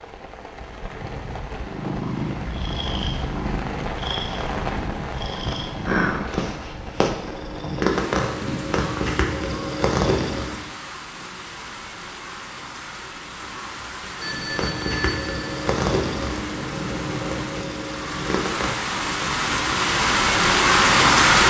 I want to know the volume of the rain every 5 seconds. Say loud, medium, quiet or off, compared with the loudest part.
quiet, quiet, quiet, quiet, loud.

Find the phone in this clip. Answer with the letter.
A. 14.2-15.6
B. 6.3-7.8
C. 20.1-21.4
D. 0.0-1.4
A.